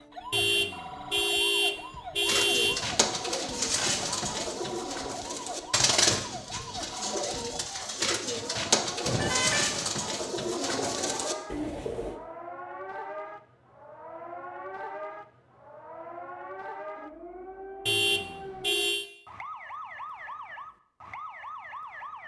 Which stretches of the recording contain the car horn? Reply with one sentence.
You can hear the car horn from 0.3 to 2.8 s, from 9.1 to 9.8 s and from 17.9 to 19.1 s.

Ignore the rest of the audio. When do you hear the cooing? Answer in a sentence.
The cooing can be heard from 2.2 to 12.2 s.